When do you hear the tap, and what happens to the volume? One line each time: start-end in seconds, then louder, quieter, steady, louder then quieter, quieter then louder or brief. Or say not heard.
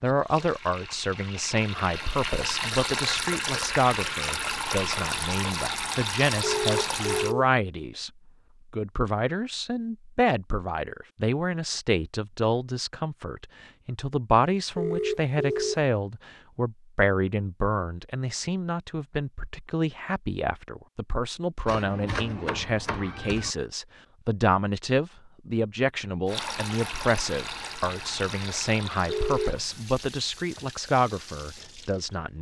0.0-7.3 louder
26.2-32.3 quieter.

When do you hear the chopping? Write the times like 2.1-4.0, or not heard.
21.6-23.6.